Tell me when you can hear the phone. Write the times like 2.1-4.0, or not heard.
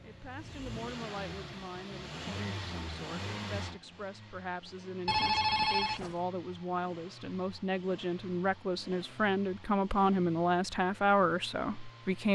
5.0-6.2.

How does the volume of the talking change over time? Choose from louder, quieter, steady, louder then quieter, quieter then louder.
louder.